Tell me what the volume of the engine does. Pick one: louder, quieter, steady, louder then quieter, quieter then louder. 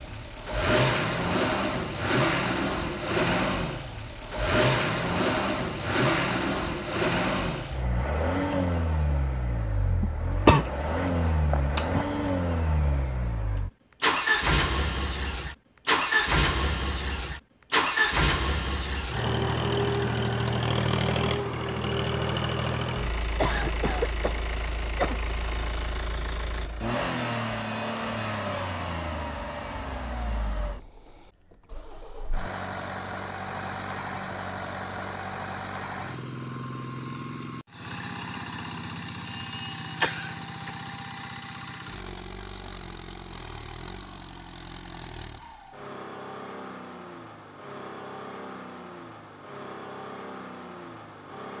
quieter.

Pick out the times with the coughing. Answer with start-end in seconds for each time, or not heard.
10.0-10.7, 11.5-12.1, 23.4-25.1, 39.2-40.8.